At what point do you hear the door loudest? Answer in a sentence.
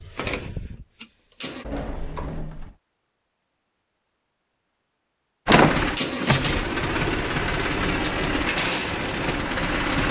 The loudest moment of the door is at 6 seconds.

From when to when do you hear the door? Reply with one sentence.
You can hear the door from 1.6 to 2.8 s and from 5.5 to 6.5 s.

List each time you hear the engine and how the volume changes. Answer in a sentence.
You can hear the engine briefly from 0.0 to 1.6 s; and from 5.5 to 10.0 s, at a steady volume.